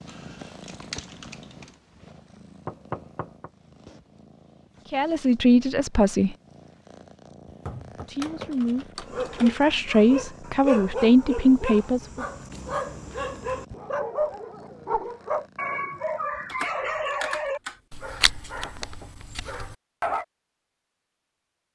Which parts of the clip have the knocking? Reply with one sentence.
The knocking can be heard from 2.6 to 3.5 s, from 7.5 to 8.1 s and from 18.5 to 19.1 s.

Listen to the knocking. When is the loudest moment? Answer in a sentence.
The loudest moment of the knocking is at 3 seconds.